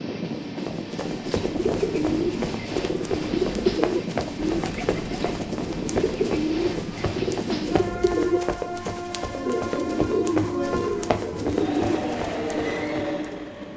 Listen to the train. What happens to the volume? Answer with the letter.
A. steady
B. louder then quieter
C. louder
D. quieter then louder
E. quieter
A.